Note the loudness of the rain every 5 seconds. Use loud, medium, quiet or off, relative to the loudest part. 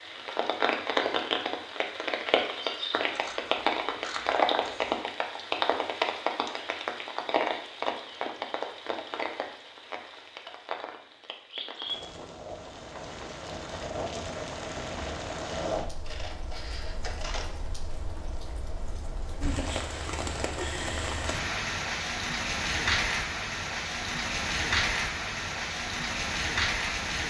loud, loud, medium, medium, loud, loud.